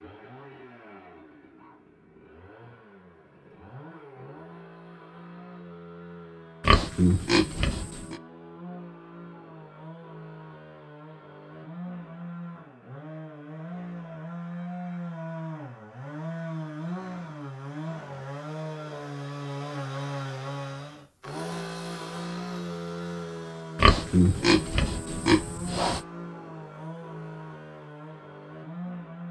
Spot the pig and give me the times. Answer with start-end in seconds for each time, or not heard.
6.6-8.2, 23.8-26.0.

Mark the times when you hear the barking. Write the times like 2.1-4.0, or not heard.
not heard.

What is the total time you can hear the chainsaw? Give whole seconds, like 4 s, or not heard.
29 s.